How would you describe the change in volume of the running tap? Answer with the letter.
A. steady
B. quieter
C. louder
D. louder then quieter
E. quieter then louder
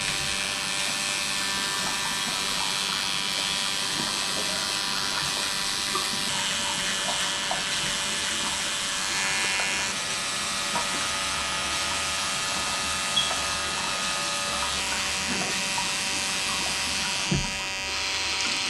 A.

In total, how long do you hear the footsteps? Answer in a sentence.
The footsteps can't be heard in this clip.